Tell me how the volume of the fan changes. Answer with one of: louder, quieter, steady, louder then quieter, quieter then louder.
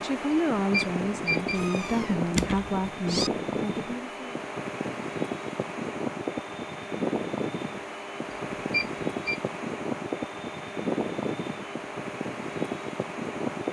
steady.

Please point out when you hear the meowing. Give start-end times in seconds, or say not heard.
1.5-3.3.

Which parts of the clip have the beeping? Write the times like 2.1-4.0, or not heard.
0.3-1.6, 8.3-9.4.